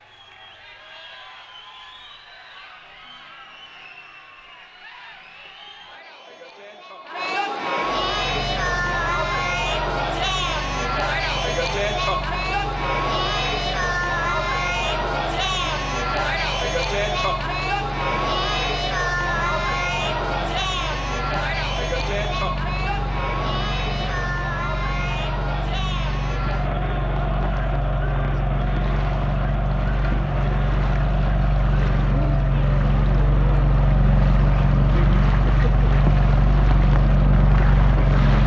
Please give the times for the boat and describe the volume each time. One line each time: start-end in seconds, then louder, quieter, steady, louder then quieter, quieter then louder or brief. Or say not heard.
7.8-38.4 louder.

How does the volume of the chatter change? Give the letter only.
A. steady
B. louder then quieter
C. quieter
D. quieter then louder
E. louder
B.